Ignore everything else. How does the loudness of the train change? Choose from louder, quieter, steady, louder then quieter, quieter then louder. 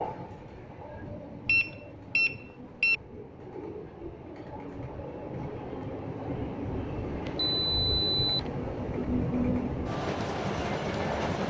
louder.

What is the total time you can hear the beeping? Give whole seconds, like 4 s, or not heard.
3 s.